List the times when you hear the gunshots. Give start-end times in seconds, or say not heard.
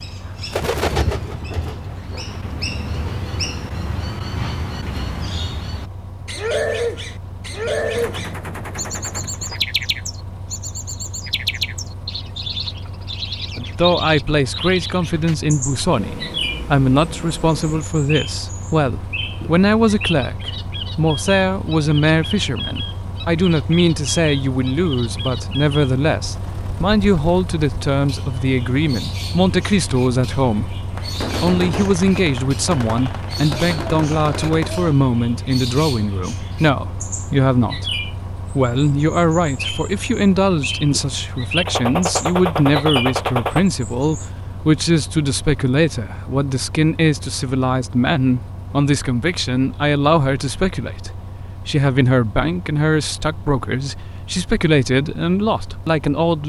7.6-9.7, 30.9-35.0, 41.6-43.6.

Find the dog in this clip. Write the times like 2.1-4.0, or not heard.
not heard.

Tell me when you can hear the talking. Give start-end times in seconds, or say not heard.
13.6-56.4.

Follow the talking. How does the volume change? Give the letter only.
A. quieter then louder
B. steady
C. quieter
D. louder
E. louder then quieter
B.